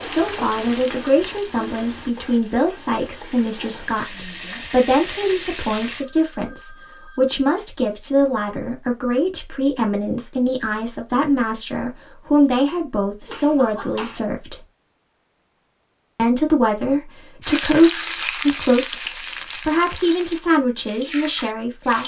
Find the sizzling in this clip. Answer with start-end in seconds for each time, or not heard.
0.0-6.0, 17.4-22.0.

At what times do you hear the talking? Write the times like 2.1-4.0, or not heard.
0.0-14.7, 16.1-22.0.